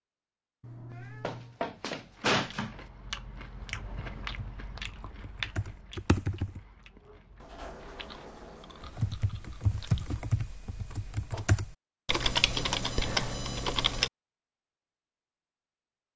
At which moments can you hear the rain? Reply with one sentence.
The rain can't be heard in this clip.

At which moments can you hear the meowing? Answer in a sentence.
The meowing can be heard from 0.6 to 1.6 s.